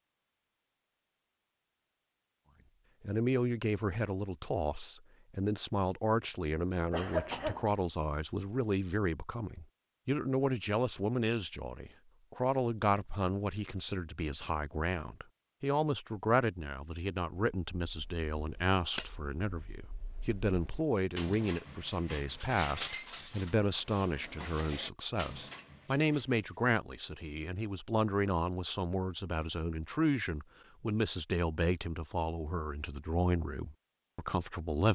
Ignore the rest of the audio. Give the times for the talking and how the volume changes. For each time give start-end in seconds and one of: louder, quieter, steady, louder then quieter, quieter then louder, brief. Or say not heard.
3.0-34.9 steady.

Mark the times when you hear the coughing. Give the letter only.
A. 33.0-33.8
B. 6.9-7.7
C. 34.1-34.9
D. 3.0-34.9
B.